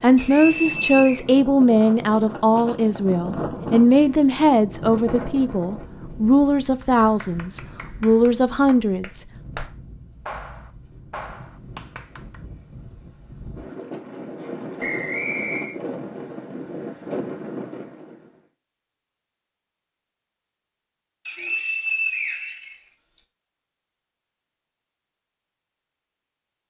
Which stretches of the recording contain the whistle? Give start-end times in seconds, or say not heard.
0.1-1.2, 14.8-15.8, 21.2-23.2.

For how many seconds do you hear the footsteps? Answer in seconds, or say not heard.
not heard.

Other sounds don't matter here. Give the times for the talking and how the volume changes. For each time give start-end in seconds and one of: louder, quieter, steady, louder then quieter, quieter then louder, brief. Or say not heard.
0.0-9.2 steady.